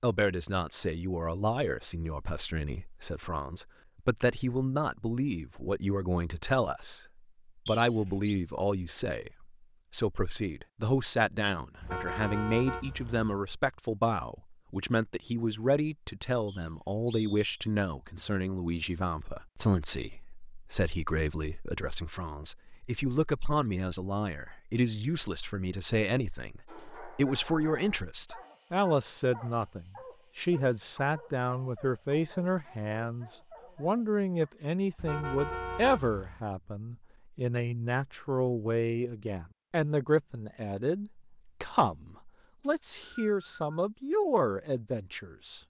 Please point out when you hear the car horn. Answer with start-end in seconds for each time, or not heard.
11.8-13.3, 35.0-36.5.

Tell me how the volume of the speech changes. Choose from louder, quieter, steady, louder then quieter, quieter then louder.
steady.